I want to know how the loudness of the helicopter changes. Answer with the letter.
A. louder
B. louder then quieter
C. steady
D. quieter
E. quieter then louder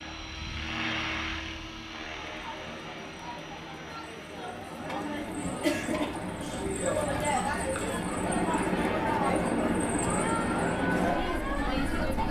E.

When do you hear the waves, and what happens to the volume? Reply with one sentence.
The waves can't be heard in this clip.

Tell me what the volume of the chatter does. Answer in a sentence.
The volume of the chatter goes up.